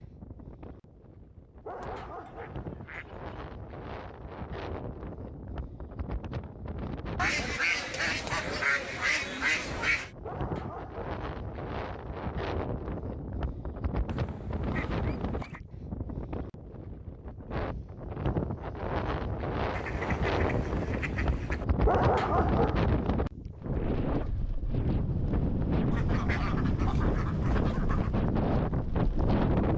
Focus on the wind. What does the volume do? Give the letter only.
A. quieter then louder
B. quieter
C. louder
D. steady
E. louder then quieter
C.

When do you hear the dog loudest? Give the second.
22 s.